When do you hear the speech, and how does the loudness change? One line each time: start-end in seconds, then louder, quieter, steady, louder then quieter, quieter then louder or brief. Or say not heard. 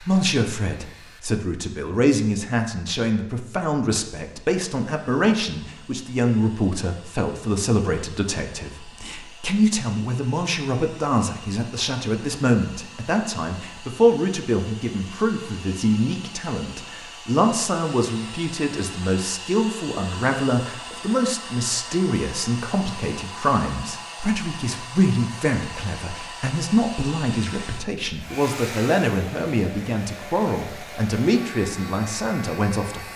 0.0-33.1 steady.